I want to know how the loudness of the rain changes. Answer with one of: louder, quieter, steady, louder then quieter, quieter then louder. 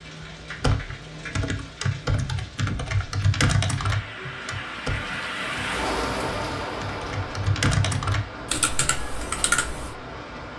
louder then quieter.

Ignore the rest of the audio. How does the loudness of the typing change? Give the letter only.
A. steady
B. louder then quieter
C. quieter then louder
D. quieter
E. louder
C.